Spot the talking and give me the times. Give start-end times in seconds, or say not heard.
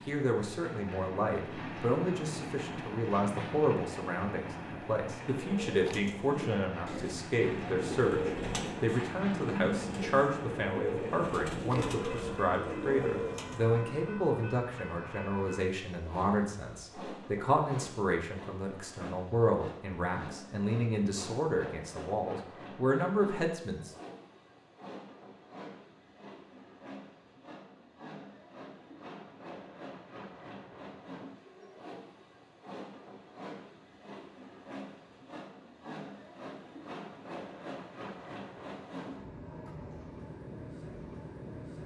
0.1-23.9.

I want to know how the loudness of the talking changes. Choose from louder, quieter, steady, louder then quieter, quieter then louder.
steady.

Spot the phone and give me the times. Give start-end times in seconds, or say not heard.
not heard.